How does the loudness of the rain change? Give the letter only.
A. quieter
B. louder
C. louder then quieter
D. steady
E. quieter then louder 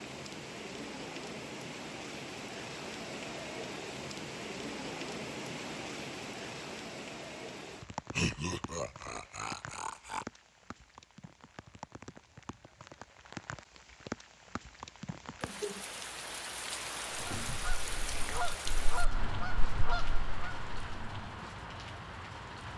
E.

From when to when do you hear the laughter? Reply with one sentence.
The laughter can be heard from 8.1 to 10.2 s.